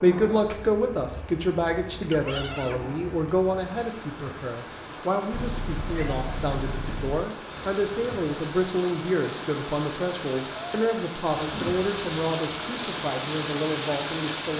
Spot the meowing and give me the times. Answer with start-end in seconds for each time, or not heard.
2.1-2.9, 5.3-7.3, 10.5-10.9.